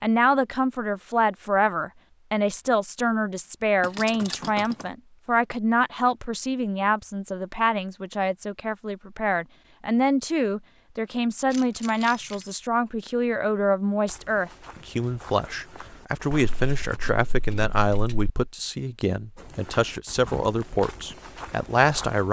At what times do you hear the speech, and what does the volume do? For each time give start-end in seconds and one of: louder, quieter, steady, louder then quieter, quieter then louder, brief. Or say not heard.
0.0-22.2 steady.